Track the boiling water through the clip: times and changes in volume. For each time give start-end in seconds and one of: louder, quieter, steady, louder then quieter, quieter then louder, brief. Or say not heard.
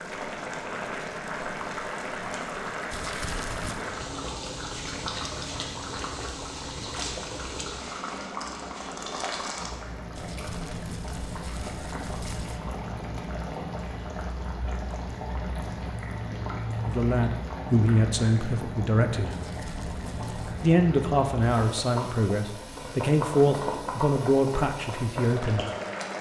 0.0-26.1 steady.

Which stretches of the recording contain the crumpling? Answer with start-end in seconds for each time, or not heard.
2.9-3.9, 10.2-12.6, 19.3-20.7.